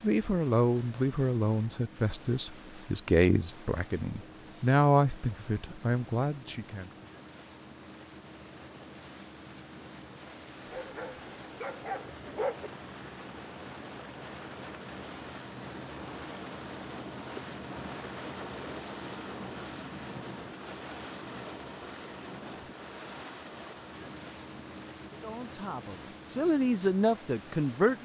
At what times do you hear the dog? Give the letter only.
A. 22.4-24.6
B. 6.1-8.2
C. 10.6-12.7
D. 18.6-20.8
C.